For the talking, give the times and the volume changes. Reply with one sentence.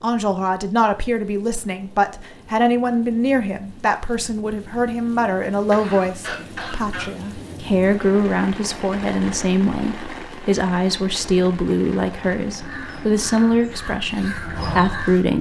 You can hear the talking from 0.0 to 15.3 s, at a steady volume.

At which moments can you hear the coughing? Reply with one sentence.
The coughing can be heard from 5.7 to 7.1 s.